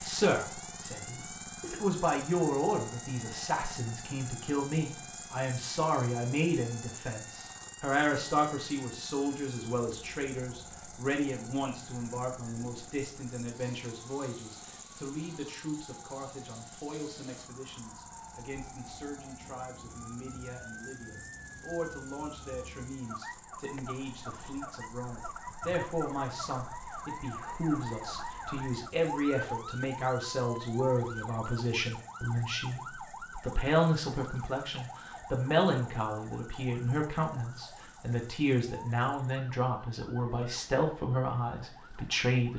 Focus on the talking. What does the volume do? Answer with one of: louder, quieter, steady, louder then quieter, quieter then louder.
quieter then louder.